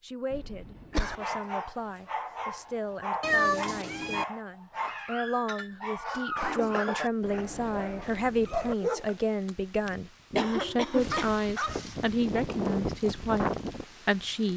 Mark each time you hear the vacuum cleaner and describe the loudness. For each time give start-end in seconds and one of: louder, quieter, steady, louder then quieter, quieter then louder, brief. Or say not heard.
not heard.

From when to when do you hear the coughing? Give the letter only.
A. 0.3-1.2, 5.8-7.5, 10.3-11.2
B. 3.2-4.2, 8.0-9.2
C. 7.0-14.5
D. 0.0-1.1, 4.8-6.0
A.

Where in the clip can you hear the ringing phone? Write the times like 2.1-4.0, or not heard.
not heard.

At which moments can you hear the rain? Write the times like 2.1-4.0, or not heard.
7.0-14.5.